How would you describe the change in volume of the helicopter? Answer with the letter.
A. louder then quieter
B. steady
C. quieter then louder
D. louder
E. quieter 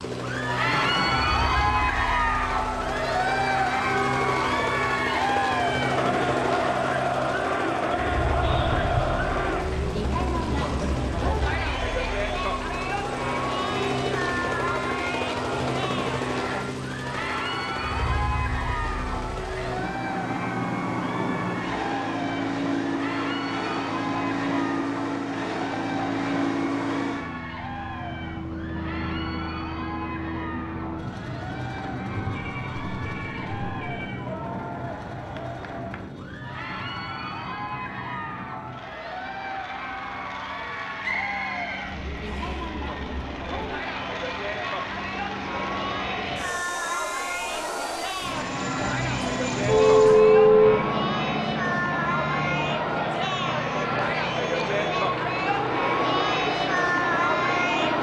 C.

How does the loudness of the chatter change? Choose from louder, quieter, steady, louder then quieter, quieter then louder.
quieter then louder.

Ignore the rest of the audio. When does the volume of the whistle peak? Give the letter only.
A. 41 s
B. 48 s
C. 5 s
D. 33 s
A.